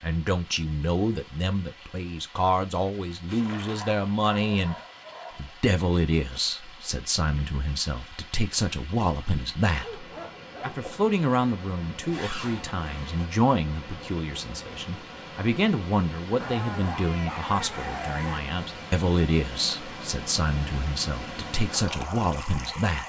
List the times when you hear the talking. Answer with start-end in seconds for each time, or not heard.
0.0-4.8, 5.3-23.0.